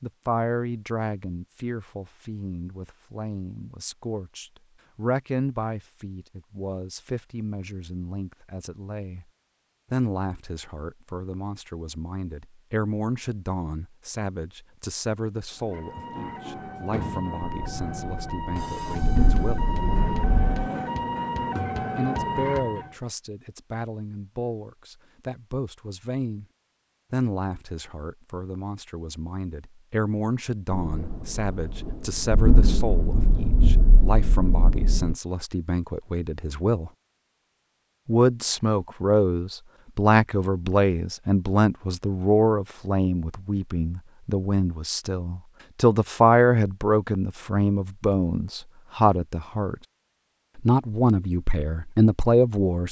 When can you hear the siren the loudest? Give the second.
22 s.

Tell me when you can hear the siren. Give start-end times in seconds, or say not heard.
15.6-22.9.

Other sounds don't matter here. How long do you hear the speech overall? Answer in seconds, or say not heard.
47 s.